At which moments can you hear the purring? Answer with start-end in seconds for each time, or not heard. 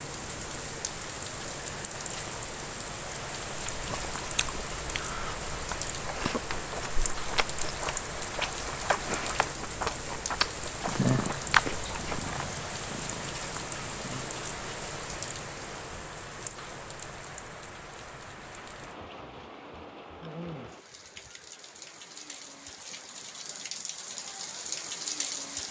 10.8-14.3.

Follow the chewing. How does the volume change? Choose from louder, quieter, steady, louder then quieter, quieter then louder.
louder.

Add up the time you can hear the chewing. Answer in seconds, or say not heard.
9 s.